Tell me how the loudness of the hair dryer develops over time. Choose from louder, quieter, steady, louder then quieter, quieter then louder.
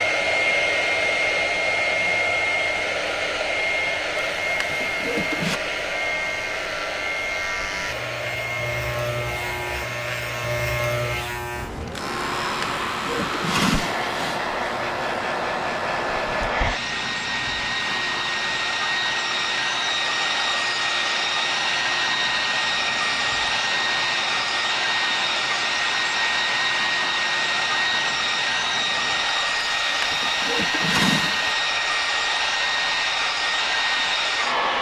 quieter then louder.